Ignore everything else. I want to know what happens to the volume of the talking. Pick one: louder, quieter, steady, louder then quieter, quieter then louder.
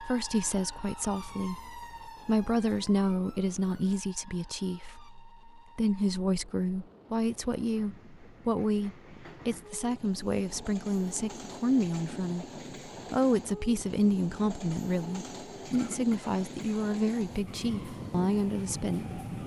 steady.